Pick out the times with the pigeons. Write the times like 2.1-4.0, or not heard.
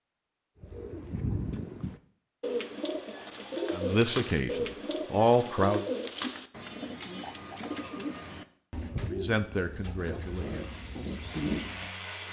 0.6-11.9.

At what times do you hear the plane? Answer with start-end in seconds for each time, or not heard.
10.2-12.2.